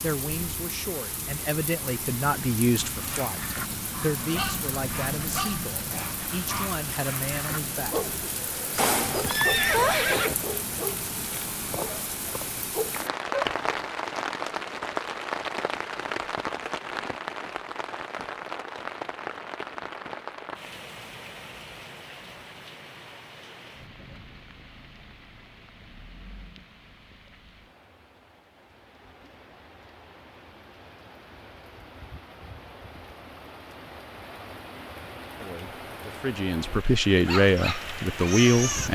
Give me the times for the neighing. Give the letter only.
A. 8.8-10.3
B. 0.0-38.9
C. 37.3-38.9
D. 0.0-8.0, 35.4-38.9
A.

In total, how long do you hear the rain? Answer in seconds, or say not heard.
39 s.